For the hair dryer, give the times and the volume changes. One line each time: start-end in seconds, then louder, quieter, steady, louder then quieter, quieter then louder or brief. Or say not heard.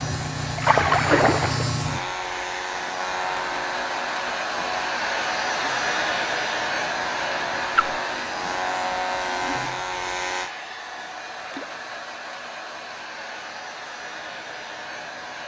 0.0-15.4 louder then quieter.